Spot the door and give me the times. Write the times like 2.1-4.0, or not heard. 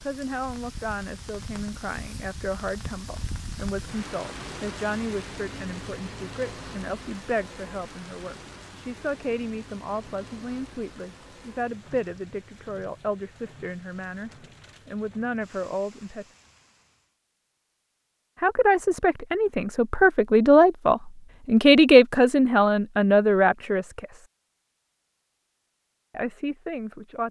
not heard.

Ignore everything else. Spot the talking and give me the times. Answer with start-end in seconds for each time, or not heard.
0.0-16.2, 18.4-24.2, 26.1-27.2.